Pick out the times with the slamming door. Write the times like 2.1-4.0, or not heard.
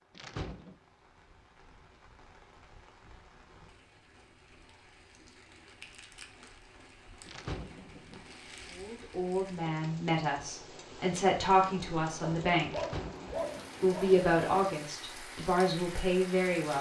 0.1-0.8, 7.2-8.2, 12.7-13.7.